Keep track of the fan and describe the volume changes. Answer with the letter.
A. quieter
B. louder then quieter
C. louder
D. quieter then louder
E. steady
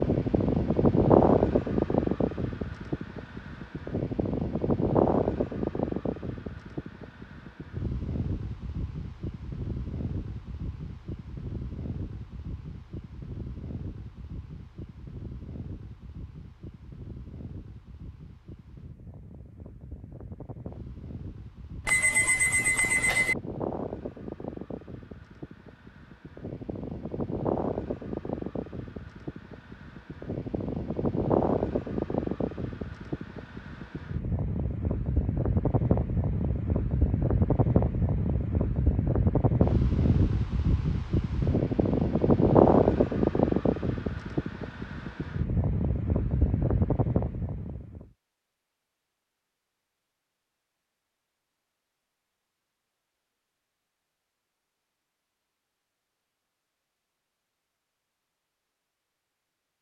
D.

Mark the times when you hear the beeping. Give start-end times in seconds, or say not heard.
21.9-23.4.